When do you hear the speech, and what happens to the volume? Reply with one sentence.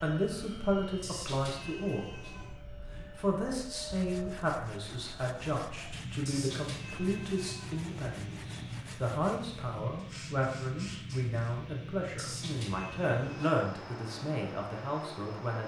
The speech can be heard briefly from 0.0 to 2.4 s; and from 3.1 to 15.6 s, at a steady volume.